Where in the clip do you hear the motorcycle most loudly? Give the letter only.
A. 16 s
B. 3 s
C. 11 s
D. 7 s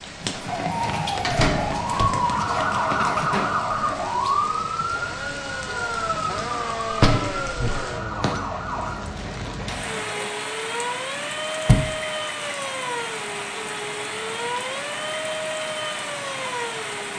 D.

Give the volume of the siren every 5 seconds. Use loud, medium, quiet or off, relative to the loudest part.
loud, medium, medium, medium.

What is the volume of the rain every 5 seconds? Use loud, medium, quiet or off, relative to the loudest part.
medium, loud, loud, loud.